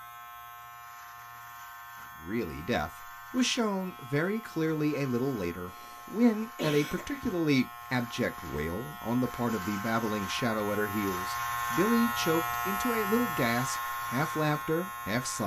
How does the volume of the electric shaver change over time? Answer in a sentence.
The volume of the electric shaver goes up.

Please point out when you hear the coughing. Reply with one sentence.
You can hear the coughing from 5.7 to 7.3 s.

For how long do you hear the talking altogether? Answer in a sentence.
You can hear the talking for 13 seconds altogether.